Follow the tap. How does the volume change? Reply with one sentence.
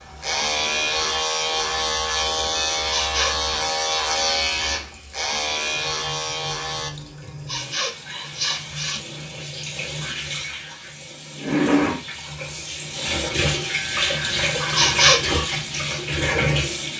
The loudness of the tap goes up.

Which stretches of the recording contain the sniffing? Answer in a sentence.
The sniffing can be heard from 2.4 to 3.4 s, from 7.0 to 9.0 s and from 14.2 to 15.2 s.